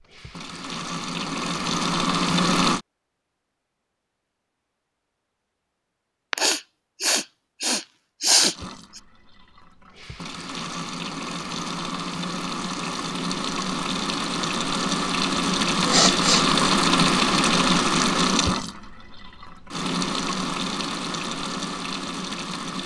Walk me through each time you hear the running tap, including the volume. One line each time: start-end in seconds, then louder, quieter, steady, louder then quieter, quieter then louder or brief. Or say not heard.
0.0-2.8 brief
8.5-22.8 louder then quieter.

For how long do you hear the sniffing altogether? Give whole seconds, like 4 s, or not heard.
3 s.